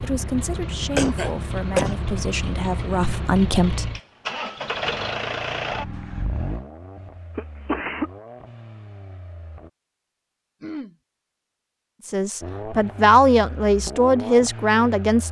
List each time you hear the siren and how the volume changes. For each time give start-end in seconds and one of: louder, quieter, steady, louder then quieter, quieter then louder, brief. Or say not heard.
not heard.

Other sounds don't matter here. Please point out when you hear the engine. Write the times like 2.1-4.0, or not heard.
0.0-9.7, 12.4-15.2.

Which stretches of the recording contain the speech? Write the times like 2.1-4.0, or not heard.
0.0-3.9, 12.1-15.2.